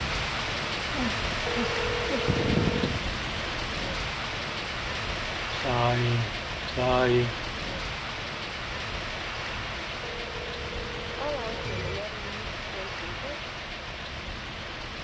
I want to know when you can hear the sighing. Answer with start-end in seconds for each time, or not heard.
0.9-3.1, 5.5-7.3, 11.2-13.4.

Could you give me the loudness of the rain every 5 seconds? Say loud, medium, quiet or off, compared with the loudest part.
loud, loud, medium.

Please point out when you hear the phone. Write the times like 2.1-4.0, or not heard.
1.4-3.0, 10.0-12.0.